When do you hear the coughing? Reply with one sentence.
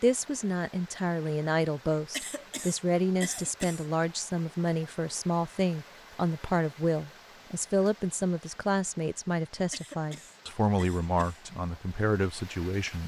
The coughing can be heard from 2.1 to 3.9 s and from 9.7 to 11.4 s.